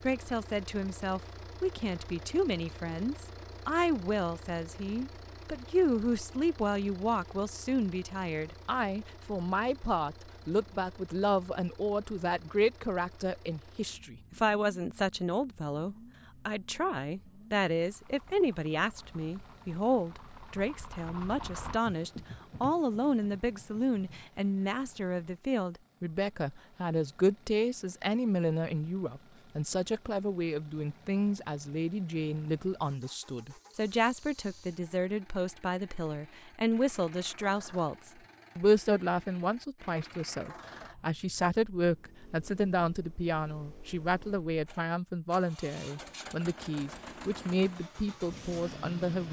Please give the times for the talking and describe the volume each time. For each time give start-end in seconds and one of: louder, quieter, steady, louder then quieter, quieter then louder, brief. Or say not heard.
0.0-49.2 steady.